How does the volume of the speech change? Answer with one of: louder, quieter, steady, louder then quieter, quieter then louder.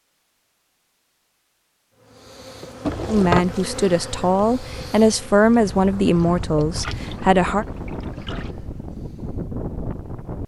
louder then quieter.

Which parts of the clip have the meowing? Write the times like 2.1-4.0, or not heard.
not heard.